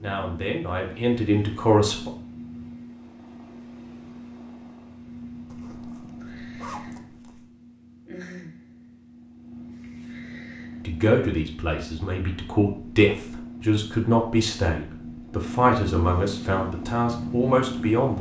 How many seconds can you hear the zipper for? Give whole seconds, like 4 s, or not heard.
2 s.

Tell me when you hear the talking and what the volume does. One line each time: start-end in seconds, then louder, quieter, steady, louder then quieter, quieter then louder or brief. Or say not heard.
0.0-2.1 brief
10.8-18.1 louder.